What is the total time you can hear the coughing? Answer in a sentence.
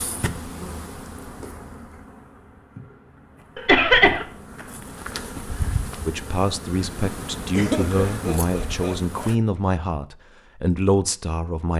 You can hear the coughing for 2 seconds altogether.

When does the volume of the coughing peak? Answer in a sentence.
The loudest moment of the coughing is at 4 seconds.